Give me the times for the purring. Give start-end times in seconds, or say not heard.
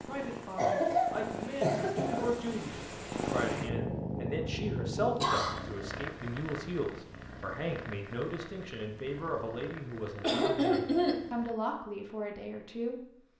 0.0-11.6.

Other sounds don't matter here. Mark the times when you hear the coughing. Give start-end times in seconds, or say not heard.
0.6-2.4, 5.0-5.6, 10.2-11.3.